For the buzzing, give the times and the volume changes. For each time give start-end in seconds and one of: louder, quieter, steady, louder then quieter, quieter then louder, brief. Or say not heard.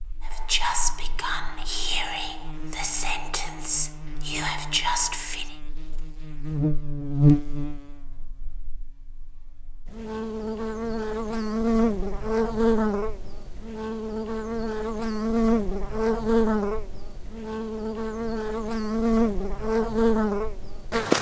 0.0-21.1 louder.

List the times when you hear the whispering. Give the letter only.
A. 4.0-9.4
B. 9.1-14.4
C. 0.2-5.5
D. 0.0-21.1
C.